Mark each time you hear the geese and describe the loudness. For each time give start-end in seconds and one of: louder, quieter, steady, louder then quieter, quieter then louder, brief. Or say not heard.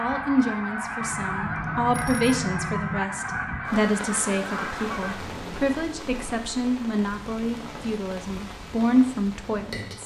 0.0-5.2 steady.